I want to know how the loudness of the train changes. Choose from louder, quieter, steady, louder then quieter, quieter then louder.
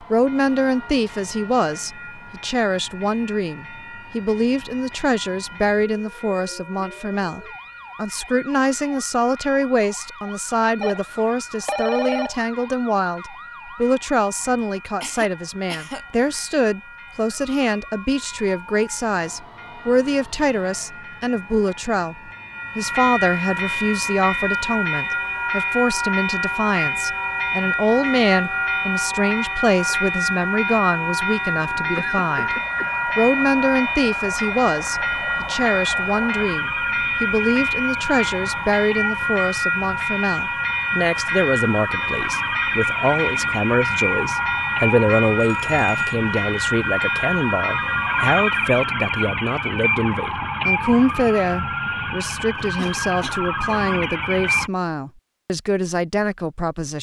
louder.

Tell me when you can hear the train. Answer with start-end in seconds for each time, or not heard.
0.1-48.7.